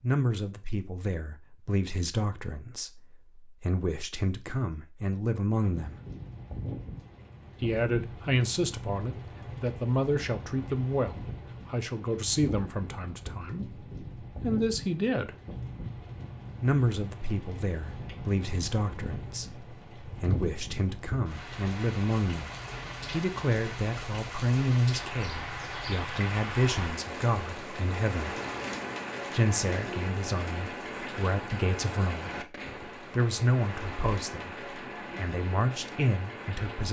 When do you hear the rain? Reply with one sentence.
The rain can be heard from 5.6 to 36.8 s.